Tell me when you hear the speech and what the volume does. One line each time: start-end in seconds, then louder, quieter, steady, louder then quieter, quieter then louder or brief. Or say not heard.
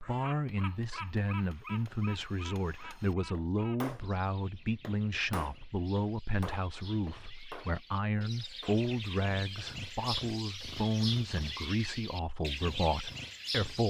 0.0-13.8 steady.